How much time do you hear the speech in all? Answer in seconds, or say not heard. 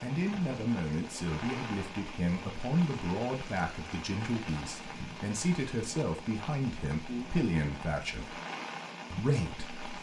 9 s.